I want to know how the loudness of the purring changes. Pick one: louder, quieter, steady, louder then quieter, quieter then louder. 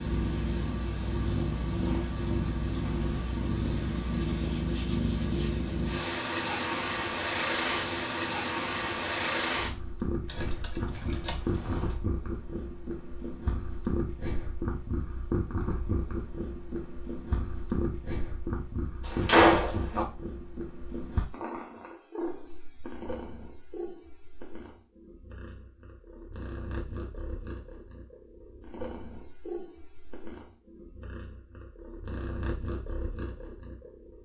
quieter.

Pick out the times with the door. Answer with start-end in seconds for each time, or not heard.
19.1-20.1.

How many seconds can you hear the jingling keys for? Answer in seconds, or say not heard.
2 s.